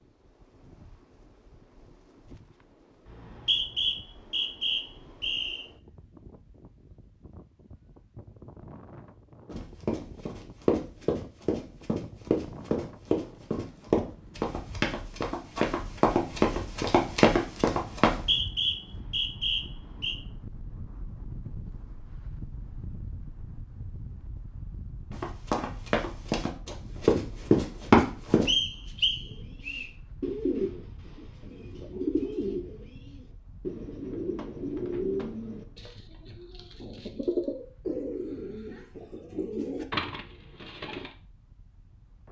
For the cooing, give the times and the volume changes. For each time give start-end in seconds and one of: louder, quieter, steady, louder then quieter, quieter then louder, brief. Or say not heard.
29.2-41.1 steady.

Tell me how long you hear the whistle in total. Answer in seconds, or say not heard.
6 s.